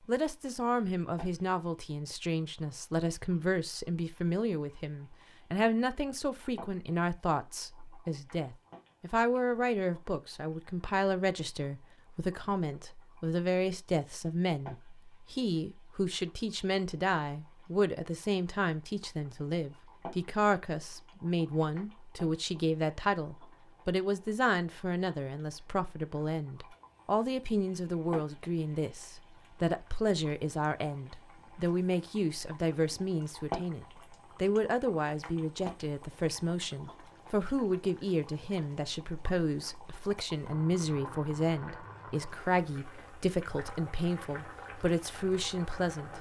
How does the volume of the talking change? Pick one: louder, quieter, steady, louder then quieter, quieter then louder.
steady.